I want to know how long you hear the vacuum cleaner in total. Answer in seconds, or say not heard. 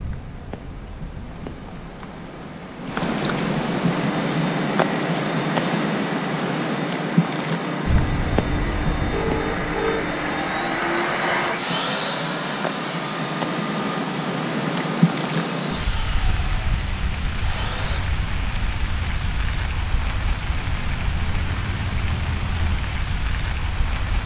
14 s.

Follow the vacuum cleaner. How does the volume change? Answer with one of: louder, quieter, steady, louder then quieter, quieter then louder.
louder then quieter.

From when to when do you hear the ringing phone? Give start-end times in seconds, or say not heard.
9.1-10.1.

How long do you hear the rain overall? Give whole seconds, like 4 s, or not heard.
24 s.